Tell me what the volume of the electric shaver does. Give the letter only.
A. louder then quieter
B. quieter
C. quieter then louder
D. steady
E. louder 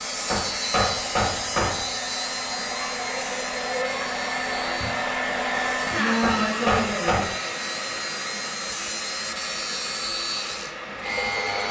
C.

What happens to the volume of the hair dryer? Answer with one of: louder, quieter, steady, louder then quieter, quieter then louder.
louder then quieter.